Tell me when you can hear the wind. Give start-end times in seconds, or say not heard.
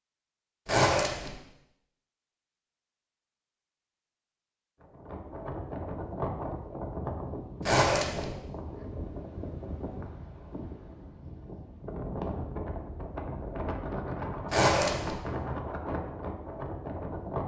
4.8-17.4.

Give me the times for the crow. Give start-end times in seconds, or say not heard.
not heard.